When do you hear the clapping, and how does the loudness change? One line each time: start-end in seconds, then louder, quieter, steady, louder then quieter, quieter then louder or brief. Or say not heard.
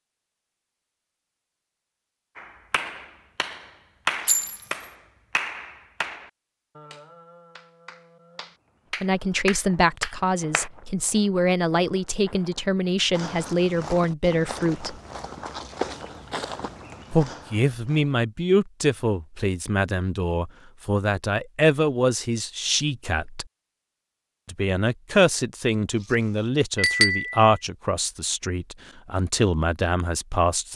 2.4-10.7 quieter then louder.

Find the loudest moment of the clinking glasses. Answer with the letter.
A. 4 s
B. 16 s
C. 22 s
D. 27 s
D.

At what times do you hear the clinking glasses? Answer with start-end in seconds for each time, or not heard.
4.2-4.7, 26.8-27.4.